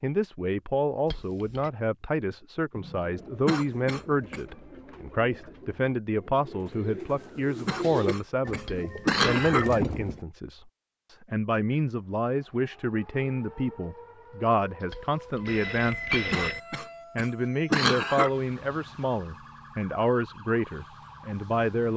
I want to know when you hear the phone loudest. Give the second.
16 s.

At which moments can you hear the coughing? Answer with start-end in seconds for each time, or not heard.
3.5-4.4, 7.7-9.7, 16.3-18.3.